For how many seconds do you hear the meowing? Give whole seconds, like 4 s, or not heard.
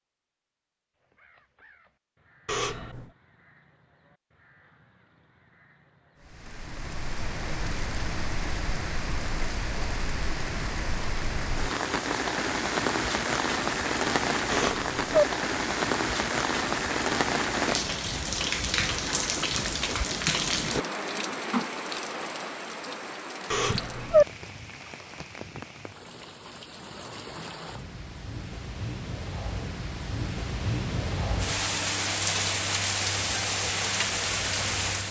2 s.